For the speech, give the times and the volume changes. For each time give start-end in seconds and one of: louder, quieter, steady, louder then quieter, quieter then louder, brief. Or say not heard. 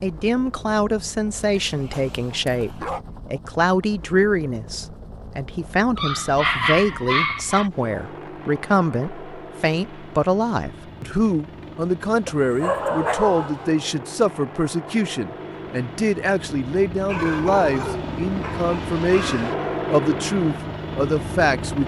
0.0-21.8 steady.